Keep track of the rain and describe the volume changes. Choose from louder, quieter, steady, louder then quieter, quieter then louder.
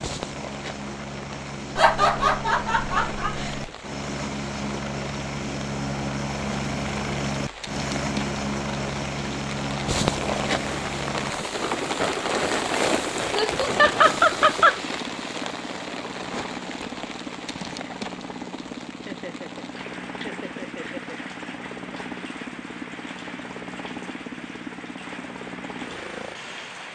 louder then quieter.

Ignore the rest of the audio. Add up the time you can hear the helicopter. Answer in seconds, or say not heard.
27 s.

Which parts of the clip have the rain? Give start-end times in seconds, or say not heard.
0.0-26.8.